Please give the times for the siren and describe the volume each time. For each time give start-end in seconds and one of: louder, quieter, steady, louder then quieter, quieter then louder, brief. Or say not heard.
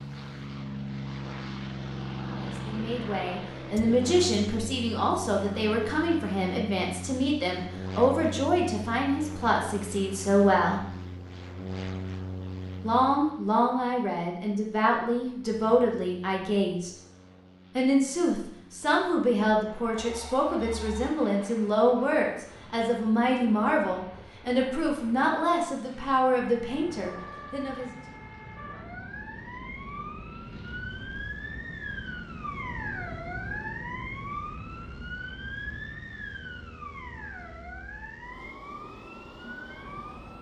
26.4-40.3 louder then quieter.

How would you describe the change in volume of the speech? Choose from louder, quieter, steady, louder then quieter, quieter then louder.
steady.